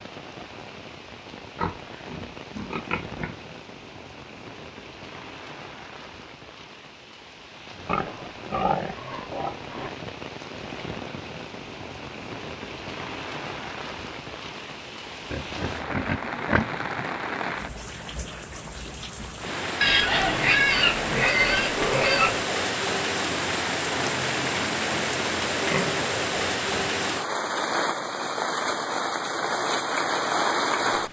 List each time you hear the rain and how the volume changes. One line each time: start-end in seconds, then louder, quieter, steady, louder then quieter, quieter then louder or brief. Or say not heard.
0.0-31.0 louder.